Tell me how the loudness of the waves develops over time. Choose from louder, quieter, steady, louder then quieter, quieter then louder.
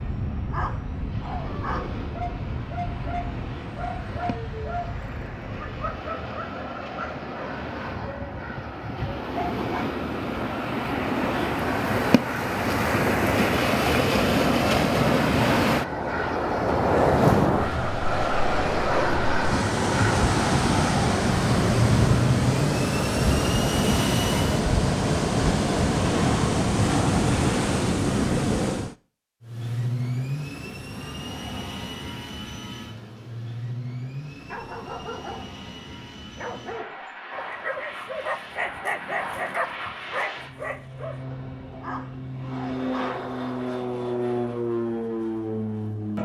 louder.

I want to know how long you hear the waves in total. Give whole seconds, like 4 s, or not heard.
29 s.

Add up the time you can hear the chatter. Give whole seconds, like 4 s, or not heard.
not heard.